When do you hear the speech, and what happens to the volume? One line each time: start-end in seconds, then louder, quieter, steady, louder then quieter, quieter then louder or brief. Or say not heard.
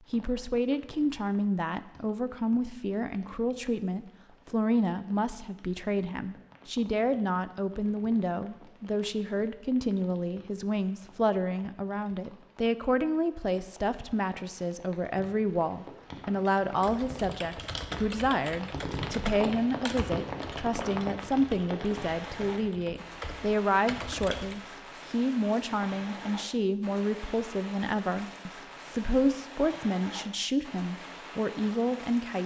0.1-32.4 steady.